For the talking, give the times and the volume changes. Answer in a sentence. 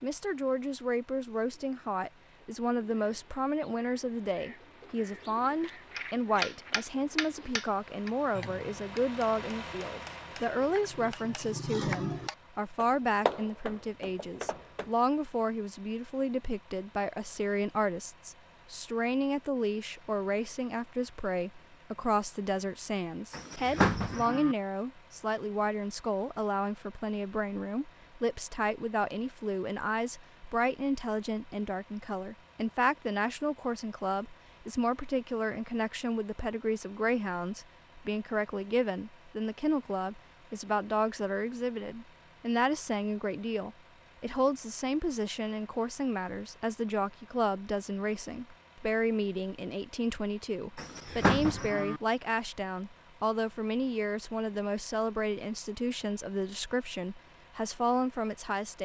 You can hear the talking from 0.0 to 58.8 s, at a steady volume.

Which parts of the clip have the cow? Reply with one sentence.
You can hear the cow from 23.3 to 24.6 s and from 50.8 to 52.0 s.